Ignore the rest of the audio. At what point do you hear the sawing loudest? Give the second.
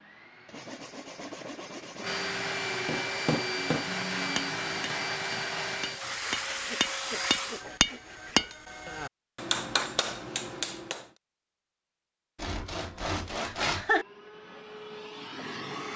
14 s.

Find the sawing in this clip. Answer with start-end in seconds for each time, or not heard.
0.5-2.2, 6.0-8.6, 12.3-14.1.